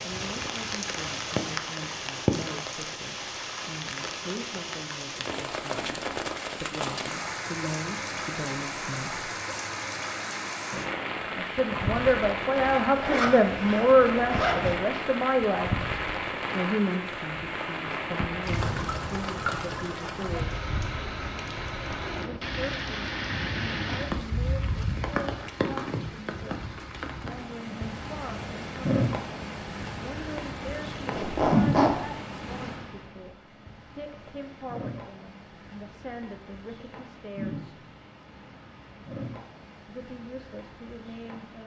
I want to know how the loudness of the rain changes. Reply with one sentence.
The loudness of the rain goes down.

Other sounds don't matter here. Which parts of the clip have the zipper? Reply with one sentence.
The zipper can be heard from 12.8 to 14.8 s and from 31.1 to 32.0 s.